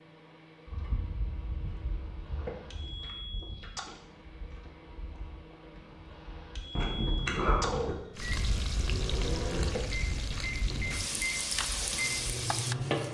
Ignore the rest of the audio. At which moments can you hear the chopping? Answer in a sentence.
You can't hear the chopping here.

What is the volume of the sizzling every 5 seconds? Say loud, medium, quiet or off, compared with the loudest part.
off, loud, loud.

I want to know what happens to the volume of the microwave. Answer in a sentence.
The loudness of the microwave goes up.